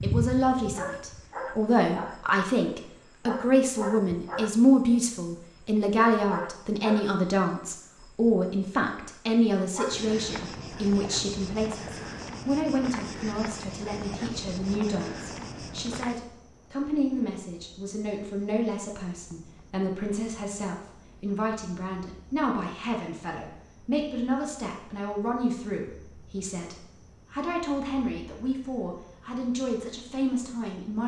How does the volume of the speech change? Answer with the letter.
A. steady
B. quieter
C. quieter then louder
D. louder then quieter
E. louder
B.